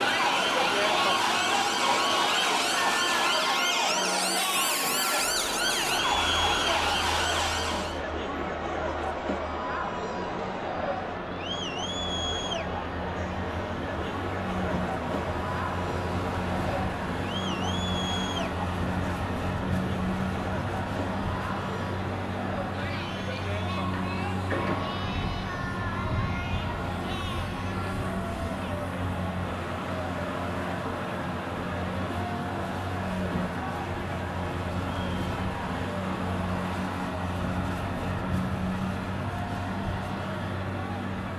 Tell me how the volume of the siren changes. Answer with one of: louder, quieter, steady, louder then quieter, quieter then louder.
steady.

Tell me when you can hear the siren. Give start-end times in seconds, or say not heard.
0.0-8.0.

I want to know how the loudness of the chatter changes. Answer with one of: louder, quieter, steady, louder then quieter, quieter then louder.
quieter.